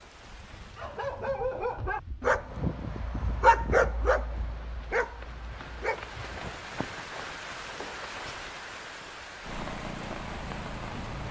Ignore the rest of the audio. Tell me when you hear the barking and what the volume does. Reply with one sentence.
You can hear the barking from 0.8 to 6.6 s, getting louder then quieter.